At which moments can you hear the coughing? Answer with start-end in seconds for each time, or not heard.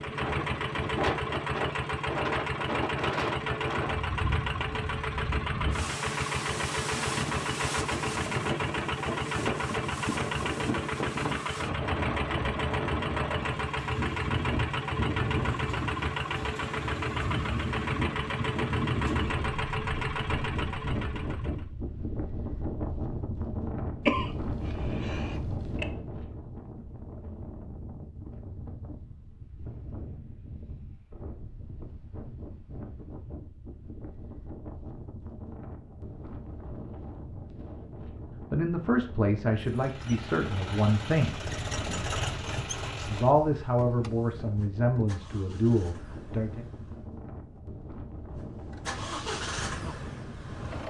24.1-25.9.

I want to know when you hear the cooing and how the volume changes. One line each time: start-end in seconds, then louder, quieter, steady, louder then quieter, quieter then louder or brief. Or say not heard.
not heard.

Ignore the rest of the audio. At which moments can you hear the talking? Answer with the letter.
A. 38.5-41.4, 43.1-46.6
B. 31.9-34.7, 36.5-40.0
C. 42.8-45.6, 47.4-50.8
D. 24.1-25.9
A.